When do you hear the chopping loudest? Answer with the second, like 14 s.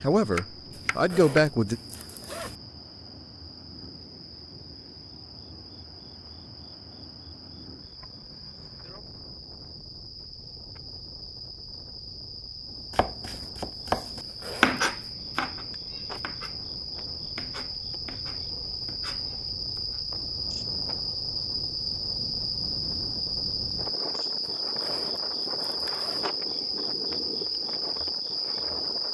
15 s.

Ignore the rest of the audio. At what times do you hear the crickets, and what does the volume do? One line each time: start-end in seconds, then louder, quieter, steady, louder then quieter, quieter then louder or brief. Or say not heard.
0.2-29.1 louder.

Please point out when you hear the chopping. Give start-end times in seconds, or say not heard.
0.1-1.4, 12.9-20.0.